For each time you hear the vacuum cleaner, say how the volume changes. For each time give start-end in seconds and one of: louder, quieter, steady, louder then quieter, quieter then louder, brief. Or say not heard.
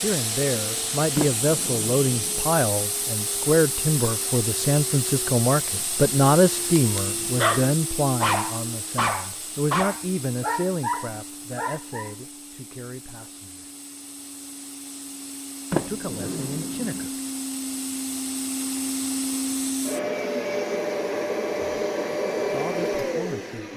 0.0-23.7 quieter then louder.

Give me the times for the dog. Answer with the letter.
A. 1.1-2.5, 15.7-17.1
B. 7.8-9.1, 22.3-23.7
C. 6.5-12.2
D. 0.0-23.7
C.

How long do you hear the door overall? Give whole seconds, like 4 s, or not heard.
3 s.